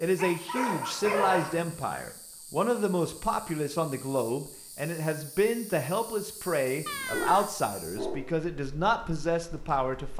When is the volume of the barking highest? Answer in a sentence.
The loudest moment of the barking is at 1 second.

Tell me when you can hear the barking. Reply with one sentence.
The barking can be heard from 0.1 to 1.6 s and from 7.0 to 8.4 s.